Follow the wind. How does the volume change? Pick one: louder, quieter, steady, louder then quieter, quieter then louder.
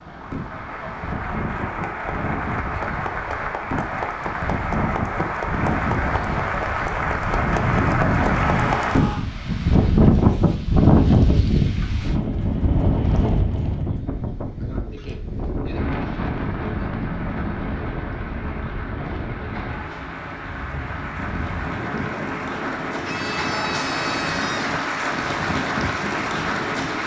louder then quieter.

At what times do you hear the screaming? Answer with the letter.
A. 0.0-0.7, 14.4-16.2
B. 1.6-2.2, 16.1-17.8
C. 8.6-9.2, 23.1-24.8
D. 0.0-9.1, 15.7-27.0
C.